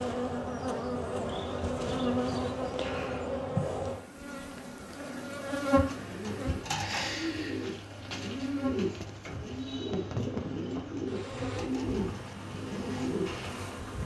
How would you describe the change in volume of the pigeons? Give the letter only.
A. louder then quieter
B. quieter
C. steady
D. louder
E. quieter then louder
C.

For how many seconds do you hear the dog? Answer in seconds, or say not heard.
not heard.